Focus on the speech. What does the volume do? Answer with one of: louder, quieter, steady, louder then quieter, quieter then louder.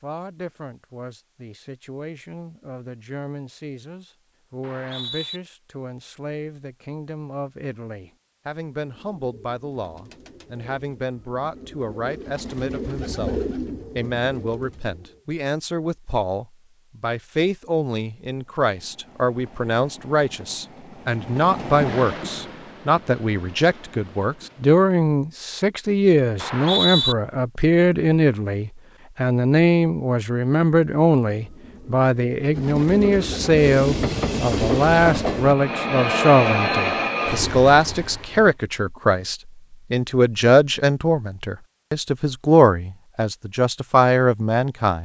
louder.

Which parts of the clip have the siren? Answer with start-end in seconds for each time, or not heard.
not heard.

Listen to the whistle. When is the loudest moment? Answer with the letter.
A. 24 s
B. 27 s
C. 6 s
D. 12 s
B.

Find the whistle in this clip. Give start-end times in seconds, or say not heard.
4.6-5.4, 26.4-27.1.